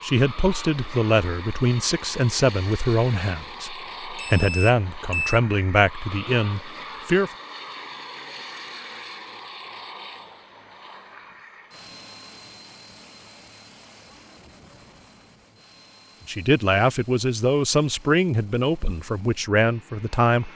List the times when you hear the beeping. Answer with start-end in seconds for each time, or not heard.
4.2-5.4.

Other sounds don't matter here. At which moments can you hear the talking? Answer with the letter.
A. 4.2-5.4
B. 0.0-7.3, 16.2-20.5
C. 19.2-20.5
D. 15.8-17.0
B.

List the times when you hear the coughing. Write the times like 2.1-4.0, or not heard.
not heard.